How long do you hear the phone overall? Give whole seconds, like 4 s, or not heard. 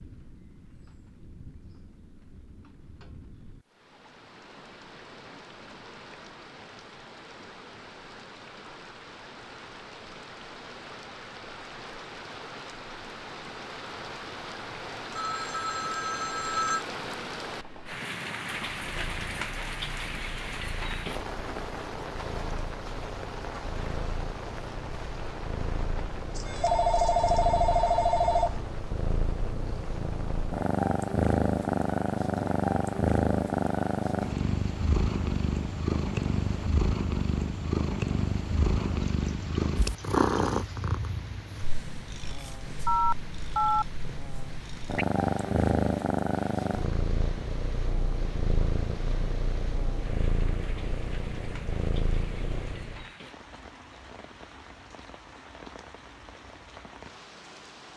5 s.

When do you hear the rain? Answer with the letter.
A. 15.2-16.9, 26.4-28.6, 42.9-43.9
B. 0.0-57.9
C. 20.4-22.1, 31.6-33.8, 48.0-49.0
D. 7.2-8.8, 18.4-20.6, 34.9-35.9
B.